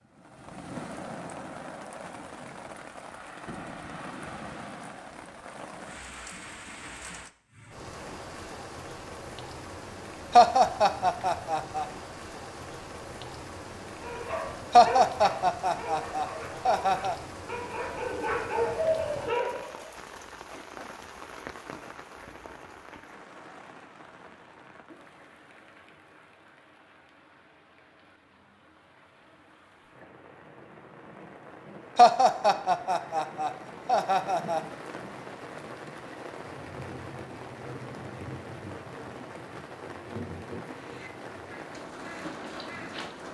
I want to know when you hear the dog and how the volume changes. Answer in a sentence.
The dog can be heard from 14.0 to 19.9 s, getting quieter then louder.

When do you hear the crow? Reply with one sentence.
You can hear the crow from 40.6 to 43.2 s.